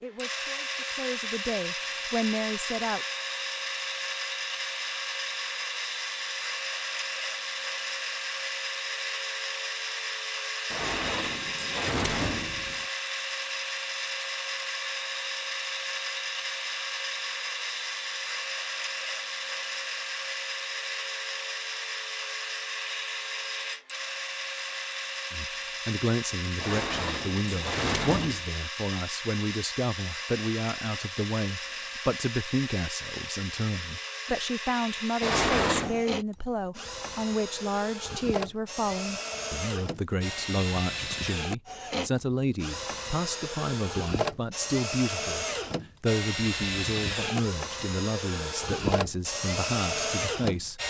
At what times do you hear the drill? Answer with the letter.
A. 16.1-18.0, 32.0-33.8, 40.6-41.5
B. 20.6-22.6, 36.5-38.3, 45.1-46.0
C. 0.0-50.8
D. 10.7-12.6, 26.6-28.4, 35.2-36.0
C.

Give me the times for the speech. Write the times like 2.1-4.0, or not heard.
0.0-3.0, 25.3-50.8.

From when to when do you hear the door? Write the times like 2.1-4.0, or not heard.
10.7-12.6, 26.6-28.4, 35.2-36.0.